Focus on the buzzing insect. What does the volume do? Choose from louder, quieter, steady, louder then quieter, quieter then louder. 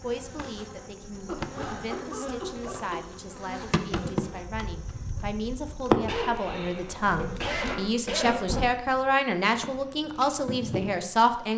louder then quieter.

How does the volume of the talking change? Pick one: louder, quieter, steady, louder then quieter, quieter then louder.
louder.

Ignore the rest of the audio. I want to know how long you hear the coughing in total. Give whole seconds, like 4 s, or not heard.
4 s.